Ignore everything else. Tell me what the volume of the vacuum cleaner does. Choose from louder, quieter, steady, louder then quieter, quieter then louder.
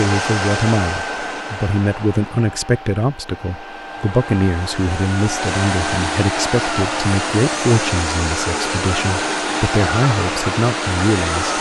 quieter then louder.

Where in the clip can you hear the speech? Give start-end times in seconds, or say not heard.
0.0-11.5.